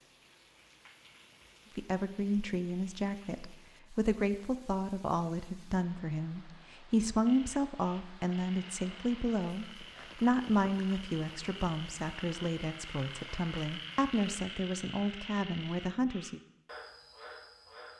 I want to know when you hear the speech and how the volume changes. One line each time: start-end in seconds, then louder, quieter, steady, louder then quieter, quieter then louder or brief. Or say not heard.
1.8-16.4 steady.